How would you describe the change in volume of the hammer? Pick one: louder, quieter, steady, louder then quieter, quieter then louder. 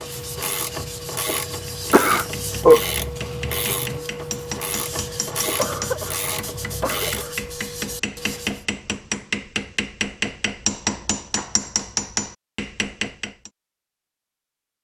louder.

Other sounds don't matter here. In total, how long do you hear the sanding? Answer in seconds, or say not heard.
9 s.